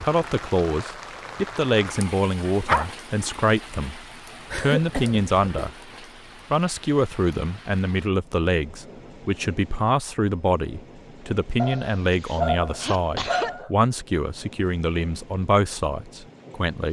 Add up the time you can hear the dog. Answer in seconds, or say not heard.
4 s.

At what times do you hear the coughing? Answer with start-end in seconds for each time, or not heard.
4.5-5.7, 11.7-13.5.